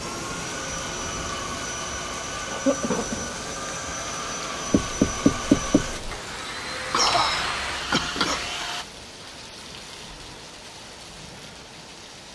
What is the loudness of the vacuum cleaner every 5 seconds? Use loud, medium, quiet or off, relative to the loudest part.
loud, loud, off.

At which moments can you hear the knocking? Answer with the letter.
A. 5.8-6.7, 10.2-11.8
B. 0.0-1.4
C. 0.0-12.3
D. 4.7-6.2
D.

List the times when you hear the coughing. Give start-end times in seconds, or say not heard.
2.5-3.3, 6.9-8.5.